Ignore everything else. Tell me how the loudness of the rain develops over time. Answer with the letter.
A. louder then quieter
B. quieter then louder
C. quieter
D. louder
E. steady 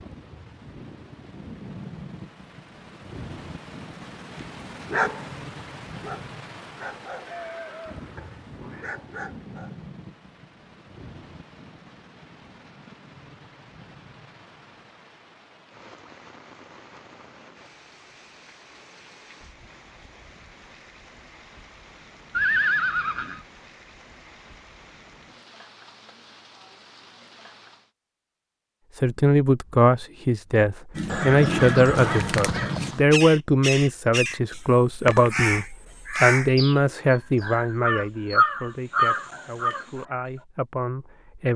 C.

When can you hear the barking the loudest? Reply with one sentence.
The loudest moment of the barking is at 5 seconds.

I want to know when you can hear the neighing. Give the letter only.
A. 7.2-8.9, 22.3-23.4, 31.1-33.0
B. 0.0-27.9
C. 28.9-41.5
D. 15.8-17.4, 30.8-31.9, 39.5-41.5
A.